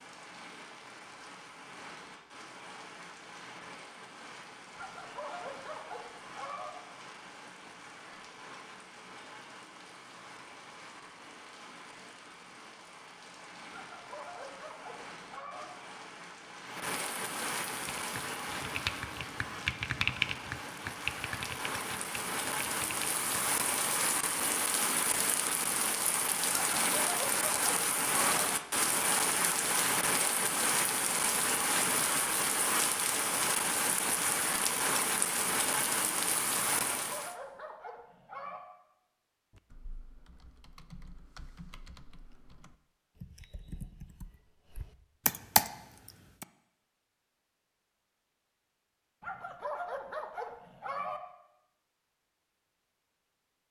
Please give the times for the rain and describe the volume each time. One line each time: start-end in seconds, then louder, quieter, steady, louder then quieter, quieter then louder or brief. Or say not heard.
0.0-37.4 louder.